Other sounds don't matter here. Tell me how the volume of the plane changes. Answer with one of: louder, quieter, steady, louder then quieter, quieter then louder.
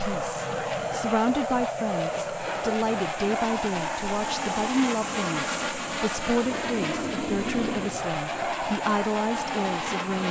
steady.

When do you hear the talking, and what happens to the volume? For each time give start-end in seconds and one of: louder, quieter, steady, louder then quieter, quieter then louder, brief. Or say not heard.
0.0-10.2 steady.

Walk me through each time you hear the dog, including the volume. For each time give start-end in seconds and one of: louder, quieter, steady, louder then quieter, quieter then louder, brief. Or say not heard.
not heard.